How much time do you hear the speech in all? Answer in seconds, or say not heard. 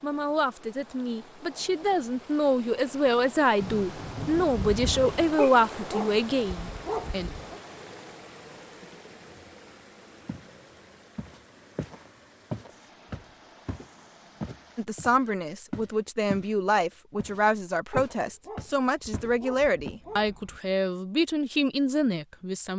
15 s.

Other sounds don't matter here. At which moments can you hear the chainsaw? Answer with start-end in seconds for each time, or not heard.
not heard.